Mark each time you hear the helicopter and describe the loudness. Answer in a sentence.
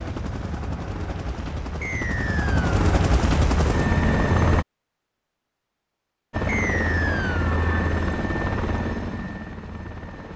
You can hear the helicopter from 0.0 to 4.7 s, getting louder; and from 6.3 to 10.3 s, getting quieter.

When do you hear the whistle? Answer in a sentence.
You can hear the whistle from 1.8 to 2.7 s and from 6.5 to 7.5 s.